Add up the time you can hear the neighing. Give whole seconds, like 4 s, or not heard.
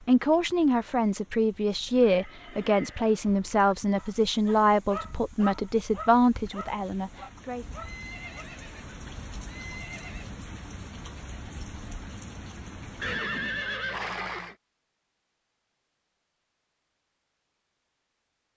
6 s.